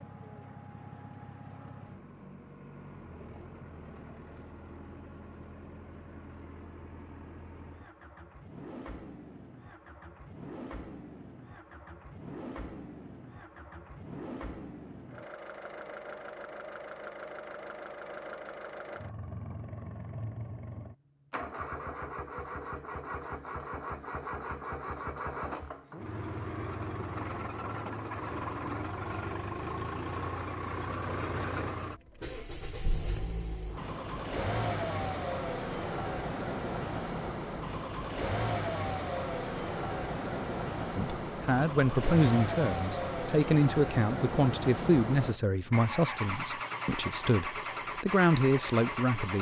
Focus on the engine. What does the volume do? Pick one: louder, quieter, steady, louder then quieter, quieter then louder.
louder.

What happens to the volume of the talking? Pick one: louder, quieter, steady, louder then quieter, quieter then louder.
quieter then louder.